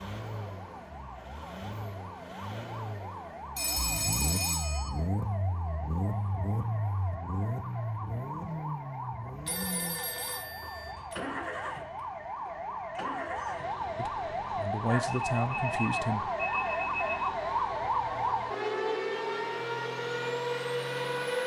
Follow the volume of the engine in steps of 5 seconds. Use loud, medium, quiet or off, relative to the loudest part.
medium, loud, medium, medium, loud.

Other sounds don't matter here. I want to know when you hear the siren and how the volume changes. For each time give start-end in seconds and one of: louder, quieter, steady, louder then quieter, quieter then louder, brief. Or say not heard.
0.0-21.4 louder.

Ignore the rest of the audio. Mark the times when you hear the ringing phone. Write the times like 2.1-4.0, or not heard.
3.5-4.9, 9.4-11.2, 14.8-17.3.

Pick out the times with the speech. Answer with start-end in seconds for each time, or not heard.
13.9-16.3.